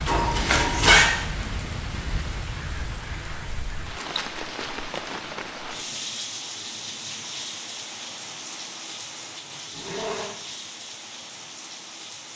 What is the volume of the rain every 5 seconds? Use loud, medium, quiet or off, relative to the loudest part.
loud, loud, medium.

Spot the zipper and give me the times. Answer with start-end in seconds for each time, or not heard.
0.1-1.1, 9.7-10.3.